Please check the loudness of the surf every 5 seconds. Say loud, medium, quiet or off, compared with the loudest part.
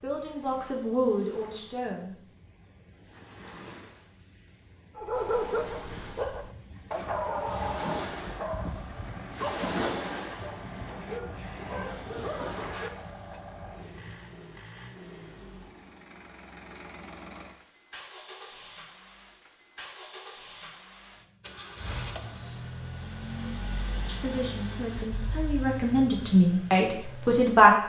quiet, loud, loud, off, off, off.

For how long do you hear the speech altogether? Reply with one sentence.
You can hear the speech for 6 seconds altogether.